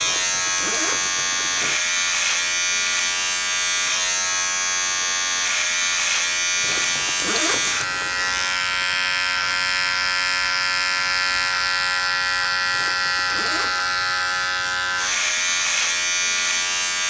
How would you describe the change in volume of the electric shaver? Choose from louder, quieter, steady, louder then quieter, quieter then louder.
steady.